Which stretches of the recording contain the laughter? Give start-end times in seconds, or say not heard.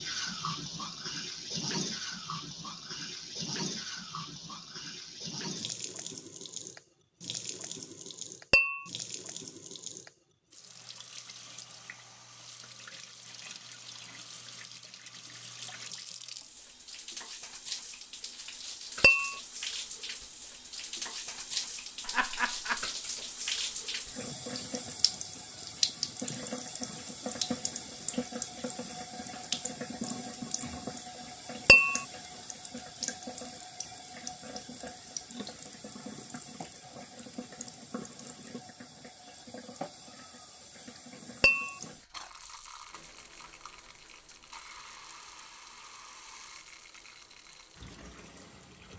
22.0-22.9.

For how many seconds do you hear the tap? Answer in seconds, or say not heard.
49 s.